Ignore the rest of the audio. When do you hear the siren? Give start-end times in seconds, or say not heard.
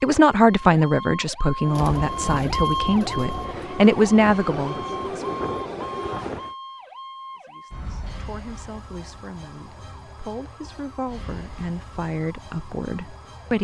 0.0-13.5.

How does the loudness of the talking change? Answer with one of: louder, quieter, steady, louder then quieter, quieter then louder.
quieter then louder.